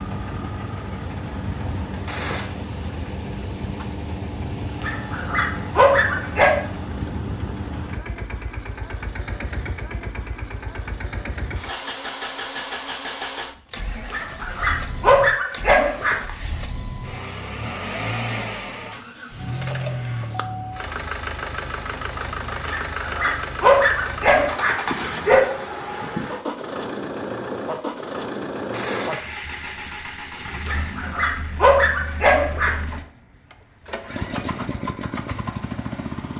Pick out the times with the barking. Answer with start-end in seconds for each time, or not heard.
4.8-6.5, 14.1-16.3, 22.6-25.4, 30.6-32.8.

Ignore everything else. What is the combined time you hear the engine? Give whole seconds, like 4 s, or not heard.
36 s.